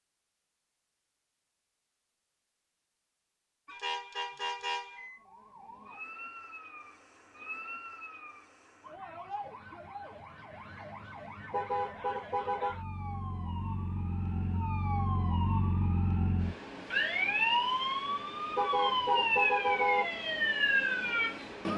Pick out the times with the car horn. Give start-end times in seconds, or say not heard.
3.6-5.2, 11.5-12.8, 18.6-20.1.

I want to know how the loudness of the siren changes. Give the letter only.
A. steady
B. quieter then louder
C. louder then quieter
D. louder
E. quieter
D.